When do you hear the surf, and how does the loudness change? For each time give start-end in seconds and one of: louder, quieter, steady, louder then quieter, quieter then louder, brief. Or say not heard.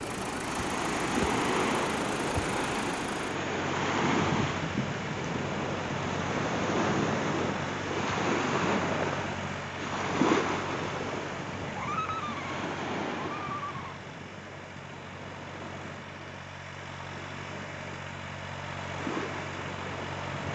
0.0-20.4 quieter.